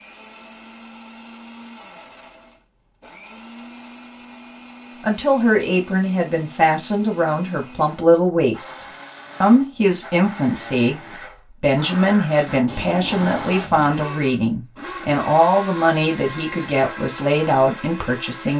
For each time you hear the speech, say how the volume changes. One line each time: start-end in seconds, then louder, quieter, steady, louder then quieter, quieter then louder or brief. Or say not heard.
5.0-18.5 steady.